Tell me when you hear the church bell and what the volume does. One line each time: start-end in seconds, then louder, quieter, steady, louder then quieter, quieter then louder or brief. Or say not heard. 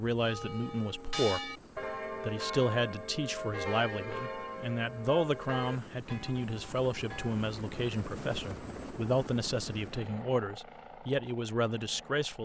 0.2-7.5 quieter.